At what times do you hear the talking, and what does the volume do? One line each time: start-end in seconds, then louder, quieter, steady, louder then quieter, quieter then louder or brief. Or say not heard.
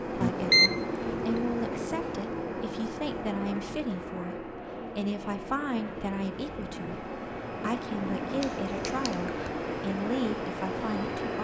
0.0-11.3 steady.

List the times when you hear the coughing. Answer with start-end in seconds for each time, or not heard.
not heard.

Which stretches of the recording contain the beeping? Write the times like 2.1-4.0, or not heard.
0.2-1.1, 8.4-9.5.